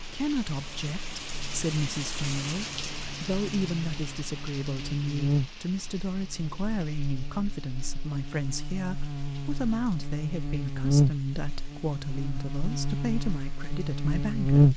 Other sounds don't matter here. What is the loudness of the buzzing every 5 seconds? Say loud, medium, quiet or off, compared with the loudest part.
quiet, medium, loud.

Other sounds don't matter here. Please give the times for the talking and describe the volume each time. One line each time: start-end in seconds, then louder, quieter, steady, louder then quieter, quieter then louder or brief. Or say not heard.
0.1-14.7 steady.